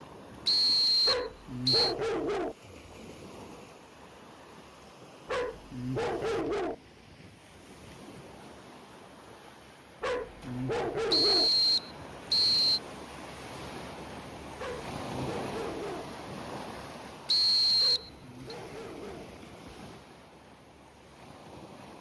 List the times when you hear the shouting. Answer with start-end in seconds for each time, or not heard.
not heard.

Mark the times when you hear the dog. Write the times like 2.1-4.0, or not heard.
1.1-2.5, 5.2-6.8, 10.0-11.5, 14.6-16.1, 17.8-19.3.